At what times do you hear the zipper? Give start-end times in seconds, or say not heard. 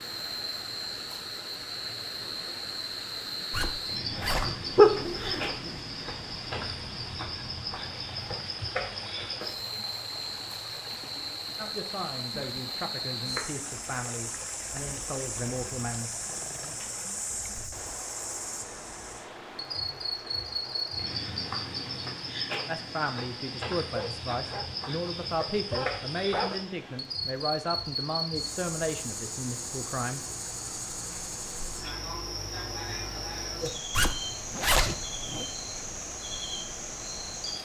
3.5-5.8, 33.9-35.5.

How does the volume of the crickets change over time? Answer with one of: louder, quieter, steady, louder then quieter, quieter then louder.
steady.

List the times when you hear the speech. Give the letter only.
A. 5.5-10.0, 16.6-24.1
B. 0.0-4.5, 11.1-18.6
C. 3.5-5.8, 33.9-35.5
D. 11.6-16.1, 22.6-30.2
D.